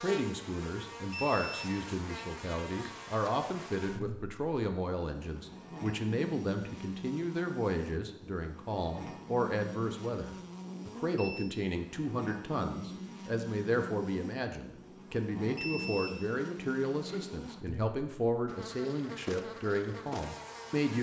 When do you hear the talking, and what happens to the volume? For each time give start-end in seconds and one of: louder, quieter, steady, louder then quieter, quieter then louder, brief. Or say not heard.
0.0-20.9 steady.